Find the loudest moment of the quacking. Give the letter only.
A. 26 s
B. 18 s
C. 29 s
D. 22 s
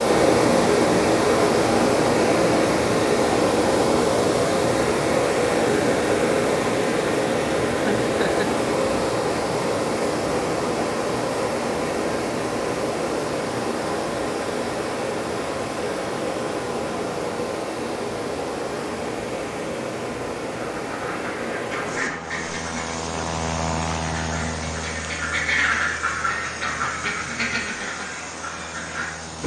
A.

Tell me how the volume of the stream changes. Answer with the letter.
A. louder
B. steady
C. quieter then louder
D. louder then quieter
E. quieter
E.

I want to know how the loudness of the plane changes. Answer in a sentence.
The loudness of the plane goes down.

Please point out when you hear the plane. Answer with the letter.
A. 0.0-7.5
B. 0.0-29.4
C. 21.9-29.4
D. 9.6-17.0
C.